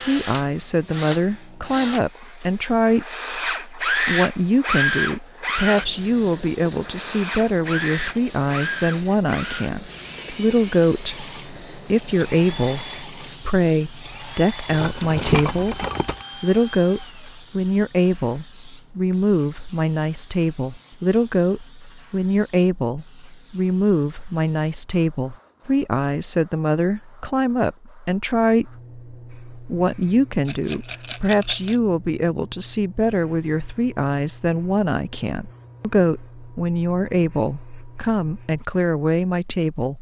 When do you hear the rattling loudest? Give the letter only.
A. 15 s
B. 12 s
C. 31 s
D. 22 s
A.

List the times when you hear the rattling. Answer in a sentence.
You can hear the rattling from 14.7 to 16.2 s and from 30.4 to 31.8 s.